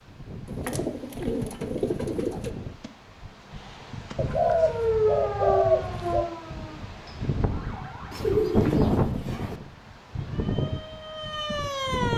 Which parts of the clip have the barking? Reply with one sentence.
The barking can't be heard in this clip.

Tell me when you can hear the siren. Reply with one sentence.
You can hear the siren from 4.3 to 8.6 s and from 10.2 to 12.1 s.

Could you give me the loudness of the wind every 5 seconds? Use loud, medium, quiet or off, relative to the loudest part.
medium, loud, loud.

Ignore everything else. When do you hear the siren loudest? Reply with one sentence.
The loudest moment of the siren is at 5 seconds.